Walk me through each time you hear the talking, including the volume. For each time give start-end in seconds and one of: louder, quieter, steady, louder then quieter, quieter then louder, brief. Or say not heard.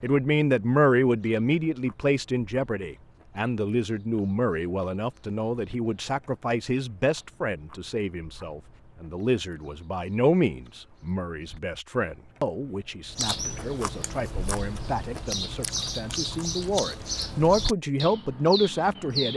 0.0-19.3 quieter then louder.